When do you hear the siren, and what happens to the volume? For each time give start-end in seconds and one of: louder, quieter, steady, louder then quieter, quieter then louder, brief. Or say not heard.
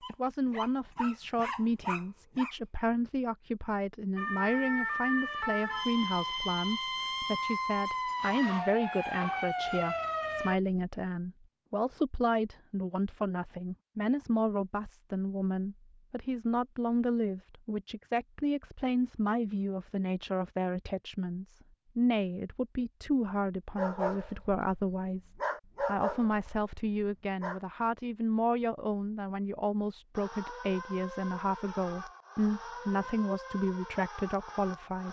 4.2-10.6 steady
30.1-35.0 steady.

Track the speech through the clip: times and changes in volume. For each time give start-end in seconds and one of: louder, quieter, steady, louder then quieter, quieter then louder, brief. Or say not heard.
0.1-35.0 steady.